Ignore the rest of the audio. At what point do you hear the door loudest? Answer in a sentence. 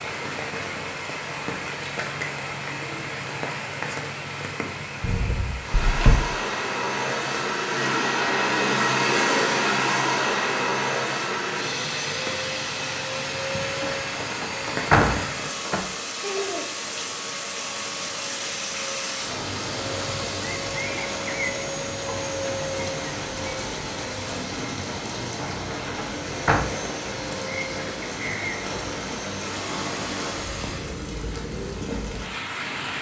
The loudest moment of the door is at 15 seconds.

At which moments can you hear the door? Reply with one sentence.
The door can be heard from 5.0 to 6.2 s, from 13.8 to 15.8 s and from 25.4 to 26.6 s.